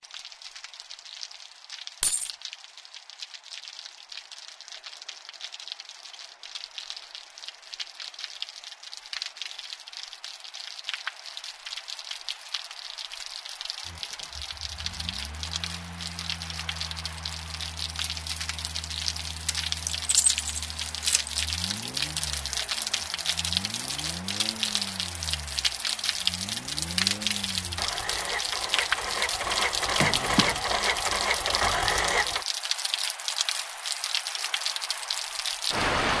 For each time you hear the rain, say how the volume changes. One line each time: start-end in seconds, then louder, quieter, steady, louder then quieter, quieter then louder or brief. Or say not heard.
0.0-36.1 louder.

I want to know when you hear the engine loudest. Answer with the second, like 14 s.
32 s.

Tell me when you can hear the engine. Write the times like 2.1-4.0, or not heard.
13.8-32.5.